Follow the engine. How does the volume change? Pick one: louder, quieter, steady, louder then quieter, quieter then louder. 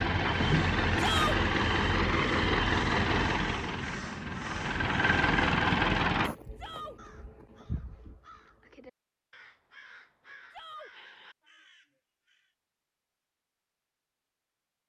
quieter then louder.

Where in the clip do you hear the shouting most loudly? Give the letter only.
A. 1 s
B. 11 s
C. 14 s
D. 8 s
A.